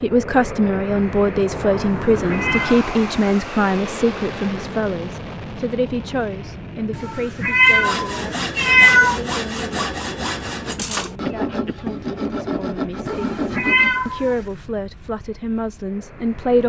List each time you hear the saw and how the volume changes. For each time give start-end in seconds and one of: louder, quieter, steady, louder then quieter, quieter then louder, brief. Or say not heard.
7.6-14.1 steady.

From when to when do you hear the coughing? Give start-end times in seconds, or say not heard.
10.8-11.9.